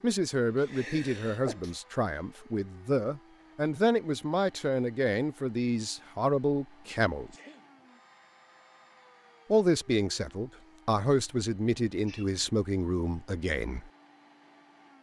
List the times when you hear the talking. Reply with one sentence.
You can hear the talking from 0.0 to 7.3 s and from 9.5 to 13.9 s.